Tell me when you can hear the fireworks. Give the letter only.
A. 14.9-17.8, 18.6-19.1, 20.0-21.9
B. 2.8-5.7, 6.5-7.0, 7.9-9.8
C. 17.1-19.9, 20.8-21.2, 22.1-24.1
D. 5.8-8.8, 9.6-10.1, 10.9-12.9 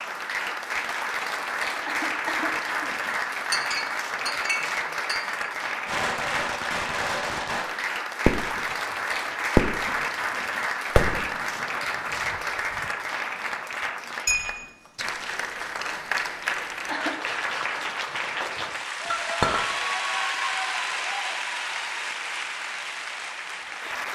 D.